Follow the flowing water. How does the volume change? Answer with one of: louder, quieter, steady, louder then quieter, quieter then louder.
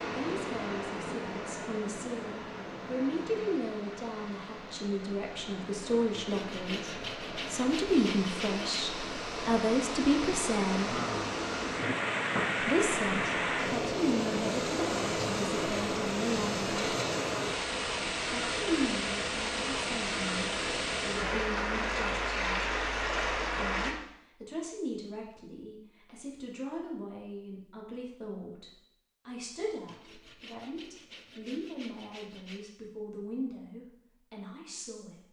louder.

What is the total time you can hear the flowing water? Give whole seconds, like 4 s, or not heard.
24 s.